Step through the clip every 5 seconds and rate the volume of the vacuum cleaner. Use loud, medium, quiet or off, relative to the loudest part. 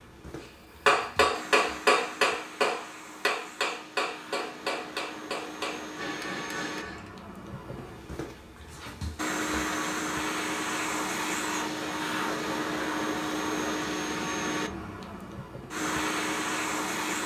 quiet, medium, loud, loud.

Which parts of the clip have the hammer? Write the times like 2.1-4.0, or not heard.
0.8-7.1.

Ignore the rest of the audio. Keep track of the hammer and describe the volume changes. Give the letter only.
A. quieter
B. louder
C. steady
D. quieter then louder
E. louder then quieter
A.